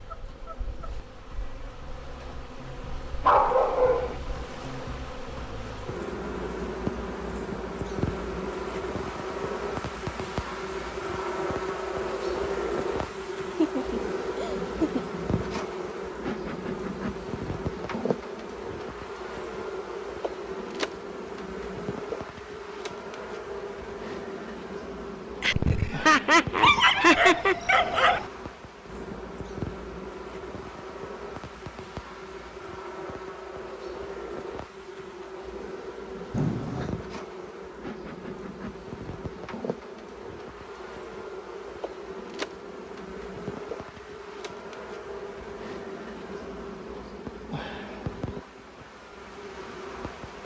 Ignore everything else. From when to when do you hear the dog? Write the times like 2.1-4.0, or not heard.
3.2-4.2, 26.6-28.2.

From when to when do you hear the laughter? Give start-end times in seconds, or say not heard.
13.1-15.0, 25.4-27.6, 36.3-37.0.